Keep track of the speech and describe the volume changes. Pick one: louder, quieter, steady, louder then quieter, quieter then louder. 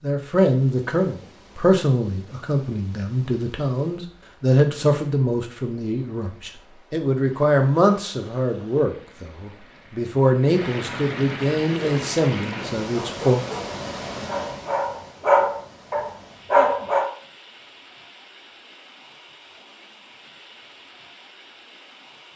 steady.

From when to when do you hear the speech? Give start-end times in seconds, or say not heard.
0.0-13.4.